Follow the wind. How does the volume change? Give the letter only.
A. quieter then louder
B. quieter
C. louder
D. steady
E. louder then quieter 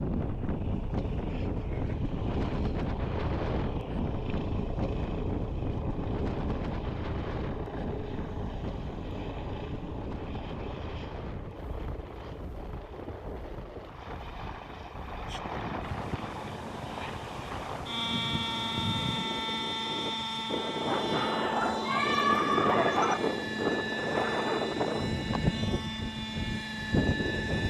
A.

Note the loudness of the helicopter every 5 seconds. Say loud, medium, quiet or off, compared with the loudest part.
medium, medium, medium, loud, loud, loud.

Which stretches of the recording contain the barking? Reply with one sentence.
You can hear the barking from 21.4 to 23.2 s.